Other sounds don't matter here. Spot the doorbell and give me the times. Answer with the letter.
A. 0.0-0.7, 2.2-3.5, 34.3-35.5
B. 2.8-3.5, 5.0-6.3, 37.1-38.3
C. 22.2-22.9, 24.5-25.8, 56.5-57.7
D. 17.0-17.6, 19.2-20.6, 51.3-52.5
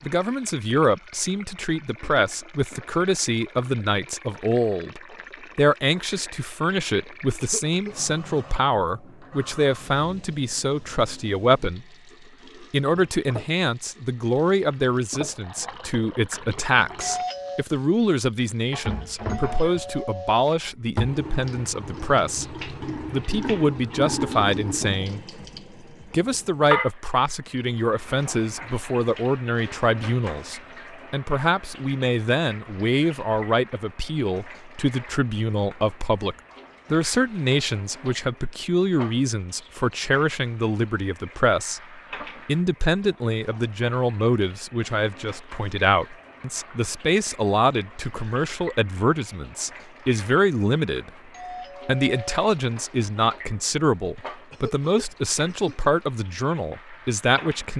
D.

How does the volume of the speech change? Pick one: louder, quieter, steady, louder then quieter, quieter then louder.
steady.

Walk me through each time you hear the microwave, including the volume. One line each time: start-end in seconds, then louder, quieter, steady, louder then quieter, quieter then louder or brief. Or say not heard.
not heard.